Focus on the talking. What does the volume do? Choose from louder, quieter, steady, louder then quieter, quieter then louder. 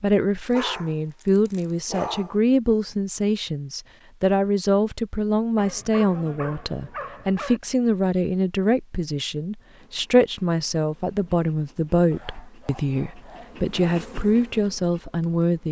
steady.